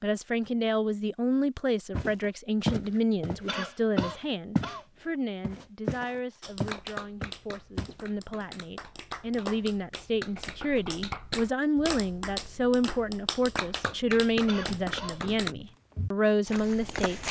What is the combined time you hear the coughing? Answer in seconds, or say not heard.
2 s.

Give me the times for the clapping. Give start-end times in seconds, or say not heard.
6.4-15.6.